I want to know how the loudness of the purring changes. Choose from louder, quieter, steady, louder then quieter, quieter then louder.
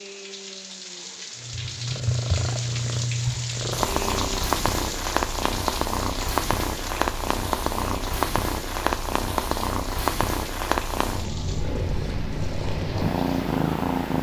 steady.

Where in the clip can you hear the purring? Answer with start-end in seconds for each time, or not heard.
1.4-14.1.